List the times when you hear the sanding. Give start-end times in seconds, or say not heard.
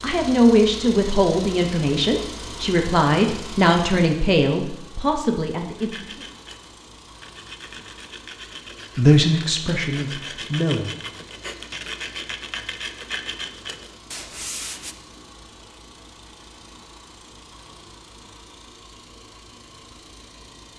5.8-14.9.